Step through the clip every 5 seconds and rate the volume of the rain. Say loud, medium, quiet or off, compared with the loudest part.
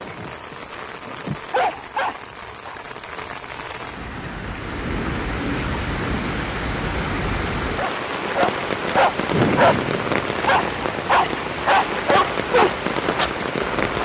medium, loud, loud.